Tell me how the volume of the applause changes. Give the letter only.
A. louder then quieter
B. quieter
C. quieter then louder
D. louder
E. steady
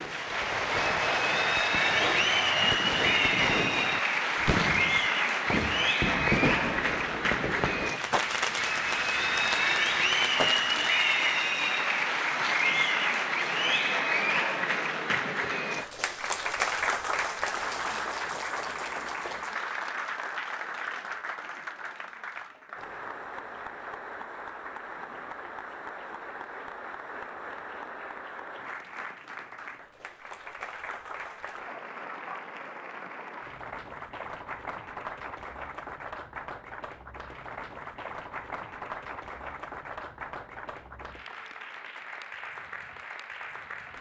B.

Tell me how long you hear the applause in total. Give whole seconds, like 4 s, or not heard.
44 s.